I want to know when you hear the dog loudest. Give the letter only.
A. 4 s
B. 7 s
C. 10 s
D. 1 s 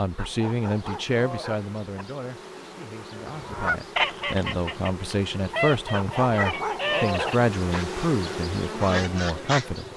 B.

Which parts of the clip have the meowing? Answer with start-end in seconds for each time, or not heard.
6.3-6.8.